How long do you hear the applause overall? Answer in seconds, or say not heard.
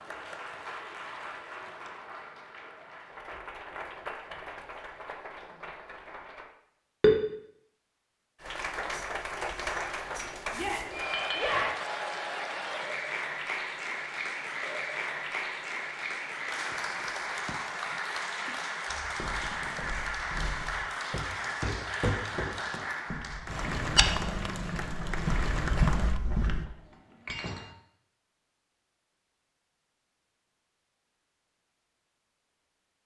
24 s.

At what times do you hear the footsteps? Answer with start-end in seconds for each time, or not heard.
18.9-26.6.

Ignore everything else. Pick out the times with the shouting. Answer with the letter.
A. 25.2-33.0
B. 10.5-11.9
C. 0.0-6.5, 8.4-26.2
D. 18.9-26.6
B.